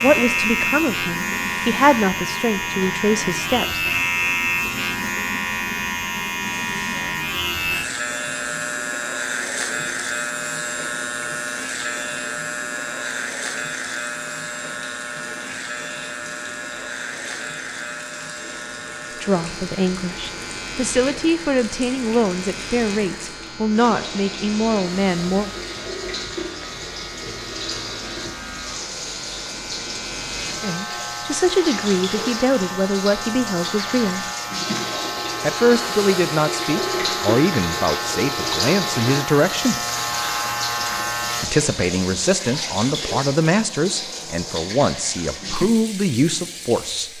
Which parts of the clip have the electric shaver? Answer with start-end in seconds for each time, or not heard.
0.0-41.5.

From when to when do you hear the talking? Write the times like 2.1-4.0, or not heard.
0.0-3.8, 19.2-25.5, 30.6-34.2, 35.4-39.8, 41.4-47.1.